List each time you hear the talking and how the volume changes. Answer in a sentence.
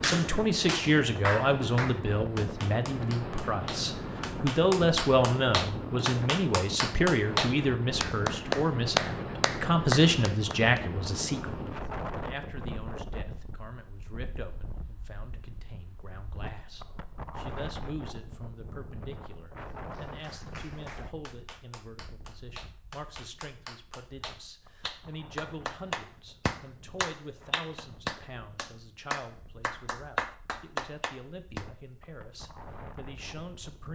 You can hear the talking from 0.0 to 33.9 s, getting quieter.